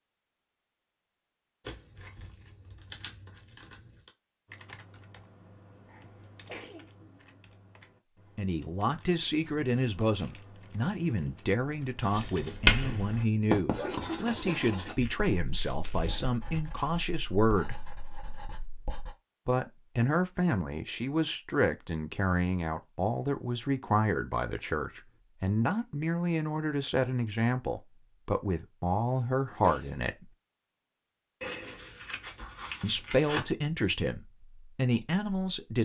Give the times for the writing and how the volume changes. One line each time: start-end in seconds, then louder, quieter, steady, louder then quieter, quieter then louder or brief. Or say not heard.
12.0-19.1 quieter.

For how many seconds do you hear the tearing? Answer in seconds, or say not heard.
6 s.